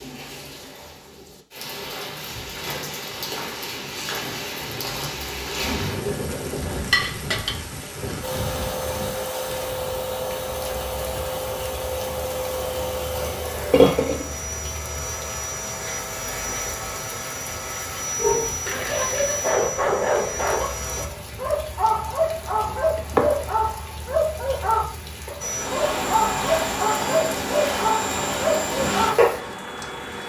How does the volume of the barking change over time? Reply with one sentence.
The volume of the barking stays about the same.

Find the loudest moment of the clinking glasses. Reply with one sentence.
The loudest moment of the clinking glasses is at 14 seconds.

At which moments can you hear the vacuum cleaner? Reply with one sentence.
The vacuum cleaner can be heard from 8.2 to 21.1 s and from 25.4 to 30.2 s.